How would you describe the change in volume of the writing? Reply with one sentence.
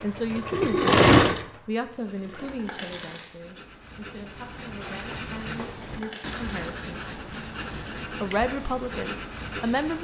The volume of the writing goes up.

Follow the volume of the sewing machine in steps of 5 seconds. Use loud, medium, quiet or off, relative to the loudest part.
loud, off.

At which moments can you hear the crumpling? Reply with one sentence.
The crumpling can be heard from 2.5 to 3.4 s and from 5.8 to 6.5 s.